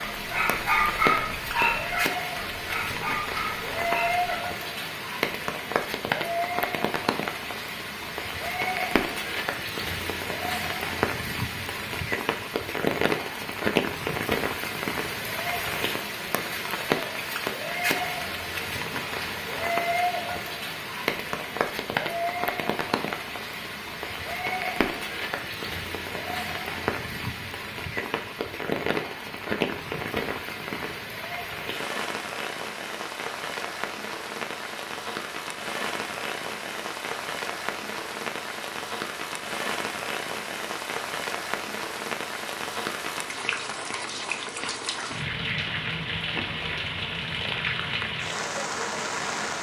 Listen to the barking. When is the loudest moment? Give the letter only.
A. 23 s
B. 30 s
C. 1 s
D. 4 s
C.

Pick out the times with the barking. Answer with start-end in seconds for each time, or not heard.
0.0-4.3.